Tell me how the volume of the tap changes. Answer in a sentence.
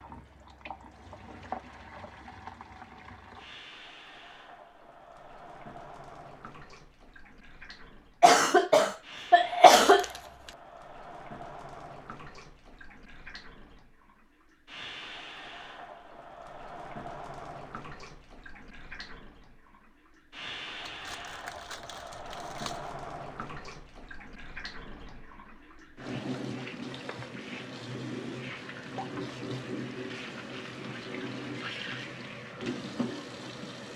The loudness of the tap goes up.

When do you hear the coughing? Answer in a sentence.
You can hear the coughing from 8.2 to 10.1 s.